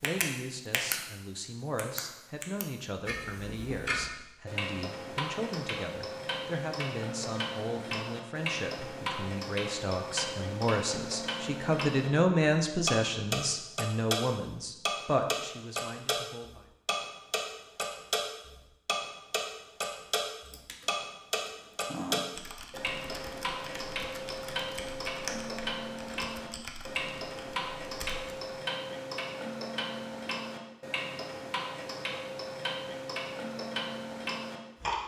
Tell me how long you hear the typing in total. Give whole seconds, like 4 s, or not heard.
8 s.